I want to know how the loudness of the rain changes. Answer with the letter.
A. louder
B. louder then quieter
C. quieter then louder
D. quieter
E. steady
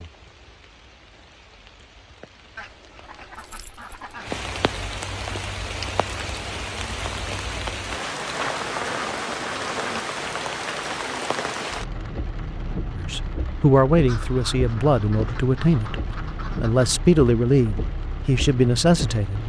B.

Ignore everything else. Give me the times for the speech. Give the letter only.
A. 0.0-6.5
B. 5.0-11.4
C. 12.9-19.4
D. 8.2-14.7
C.